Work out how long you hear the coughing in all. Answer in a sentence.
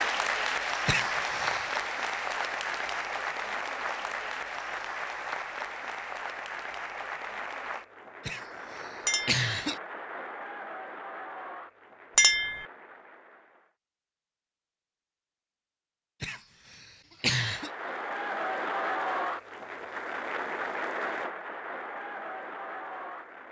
You can hear the coughing for 4 seconds altogether.